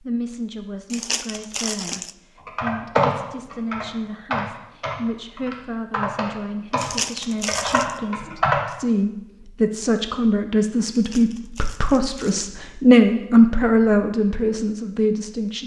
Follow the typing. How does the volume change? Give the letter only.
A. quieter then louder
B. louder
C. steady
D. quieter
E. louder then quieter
D.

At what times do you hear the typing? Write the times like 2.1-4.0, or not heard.
2.5-8.6.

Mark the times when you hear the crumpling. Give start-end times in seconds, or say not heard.
0.9-2.1, 6.8-8.0, 10.9-12.4.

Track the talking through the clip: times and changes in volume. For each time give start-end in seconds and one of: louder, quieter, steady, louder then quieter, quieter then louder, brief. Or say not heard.
0.0-15.6 louder.